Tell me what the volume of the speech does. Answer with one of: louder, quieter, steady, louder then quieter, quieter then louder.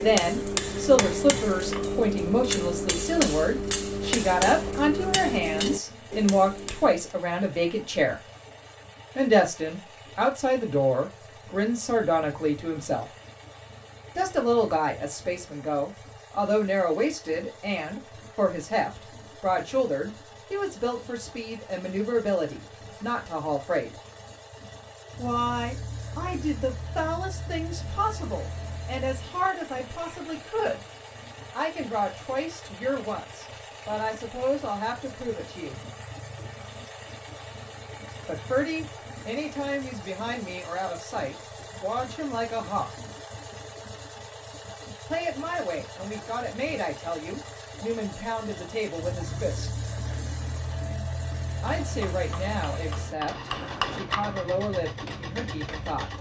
quieter.